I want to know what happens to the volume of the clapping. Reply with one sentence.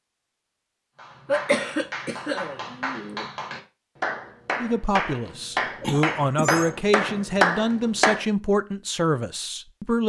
The loudness of the clapping goes up.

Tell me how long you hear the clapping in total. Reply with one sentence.
You can hear the clapping for 7 seconds altogether.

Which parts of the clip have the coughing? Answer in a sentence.
The coughing can be heard from 1.2 to 3.2 s and from 5.8 to 6.7 s.